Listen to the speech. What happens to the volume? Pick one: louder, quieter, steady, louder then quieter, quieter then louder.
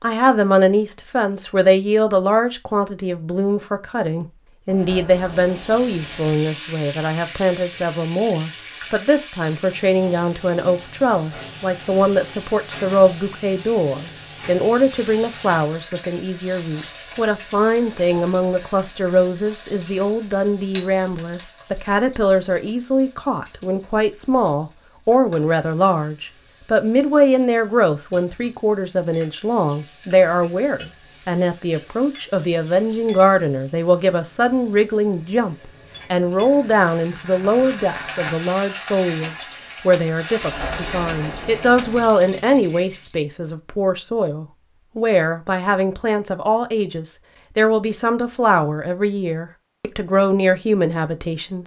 steady.